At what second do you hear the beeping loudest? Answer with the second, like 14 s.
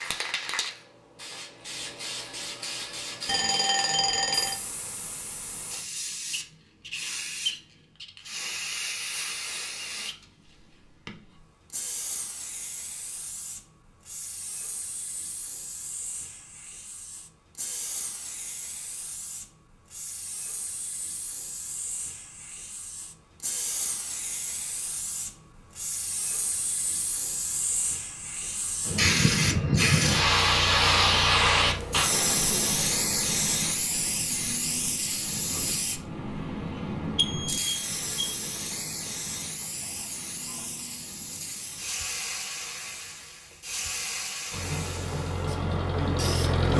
4 s.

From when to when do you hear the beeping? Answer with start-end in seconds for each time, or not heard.
3.2-4.6, 37.0-38.3.